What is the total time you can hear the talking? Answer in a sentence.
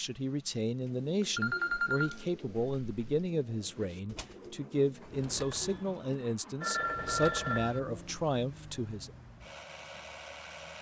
You can hear the talking for 9 seconds altogether.